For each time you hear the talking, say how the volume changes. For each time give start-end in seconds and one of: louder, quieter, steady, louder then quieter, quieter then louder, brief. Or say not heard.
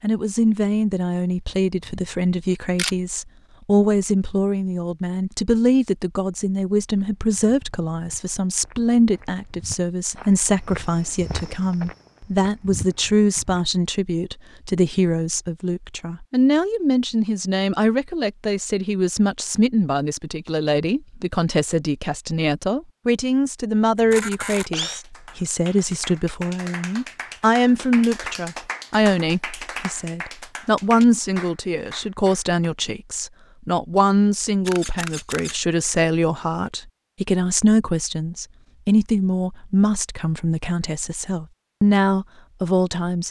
0.0-43.2 steady.